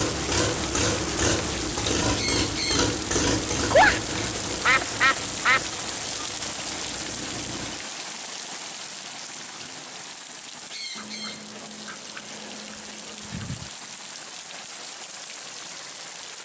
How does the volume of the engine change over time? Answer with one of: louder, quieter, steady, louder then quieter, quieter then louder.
quieter.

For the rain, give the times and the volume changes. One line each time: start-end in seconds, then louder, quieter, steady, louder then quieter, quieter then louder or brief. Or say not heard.
0.0-16.4 quieter.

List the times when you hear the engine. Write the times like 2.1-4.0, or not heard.
0.0-7.8.